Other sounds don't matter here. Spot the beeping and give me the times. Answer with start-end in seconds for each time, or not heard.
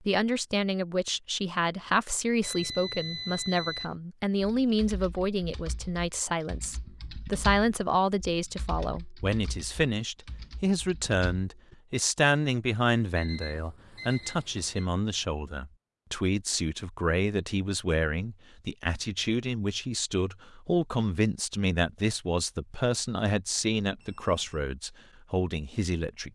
2.4-4.0, 13.2-14.9, 24.0-24.6.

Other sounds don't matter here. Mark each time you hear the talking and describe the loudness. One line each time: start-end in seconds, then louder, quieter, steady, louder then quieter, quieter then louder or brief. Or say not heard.
0.1-26.2 steady.